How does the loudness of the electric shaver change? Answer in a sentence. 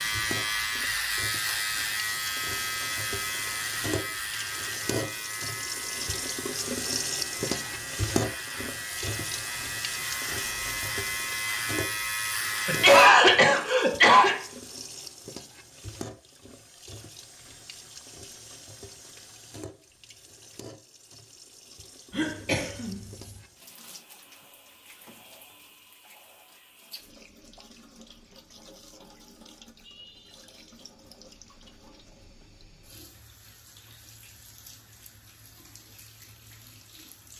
The volume of the electric shaver goes down, then up.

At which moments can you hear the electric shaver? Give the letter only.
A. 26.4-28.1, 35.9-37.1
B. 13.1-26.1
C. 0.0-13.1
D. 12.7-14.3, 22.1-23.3
C.